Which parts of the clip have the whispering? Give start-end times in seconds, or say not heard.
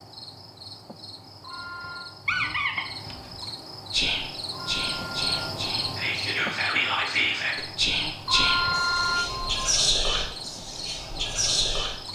3.9-11.9.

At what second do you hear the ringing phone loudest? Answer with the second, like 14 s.
9 s.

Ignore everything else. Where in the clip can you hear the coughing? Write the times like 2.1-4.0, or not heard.
not heard.